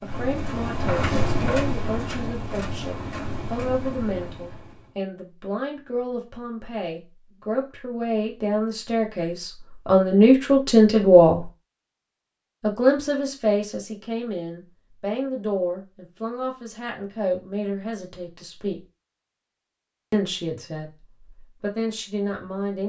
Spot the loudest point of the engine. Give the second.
1 s.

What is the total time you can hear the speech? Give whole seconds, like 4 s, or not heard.
20 s.